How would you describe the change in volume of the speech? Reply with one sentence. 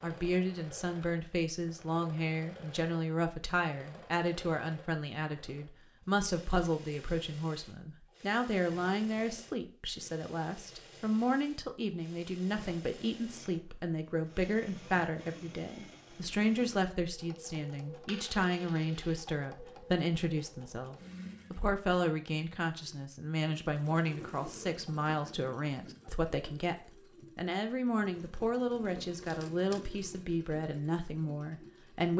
The loudness of the speech stays about the same.